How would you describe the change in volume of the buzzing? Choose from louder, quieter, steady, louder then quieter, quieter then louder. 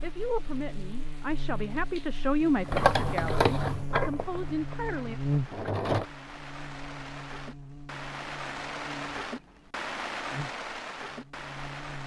louder then quieter.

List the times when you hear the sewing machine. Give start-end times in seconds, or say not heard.
2.6-6.0.